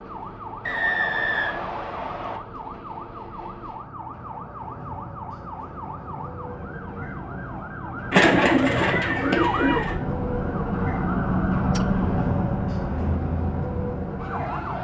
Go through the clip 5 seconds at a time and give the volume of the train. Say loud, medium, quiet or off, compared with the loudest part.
quiet, medium, loud.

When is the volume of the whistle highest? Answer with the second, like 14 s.
1 s.